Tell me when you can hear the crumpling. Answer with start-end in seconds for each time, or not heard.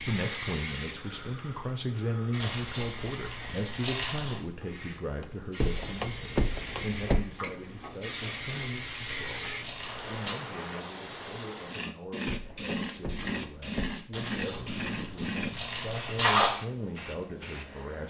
2.4-4.4, 8.2-10.3, 14.1-16.5.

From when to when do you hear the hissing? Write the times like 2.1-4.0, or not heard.
0.0-18.0.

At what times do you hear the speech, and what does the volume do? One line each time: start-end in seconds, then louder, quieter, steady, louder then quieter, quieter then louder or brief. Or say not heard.
0.1-18.0 quieter then louder.